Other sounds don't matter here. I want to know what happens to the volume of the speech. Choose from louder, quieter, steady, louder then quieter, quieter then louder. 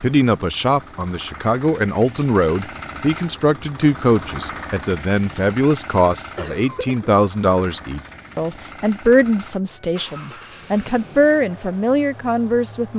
steady.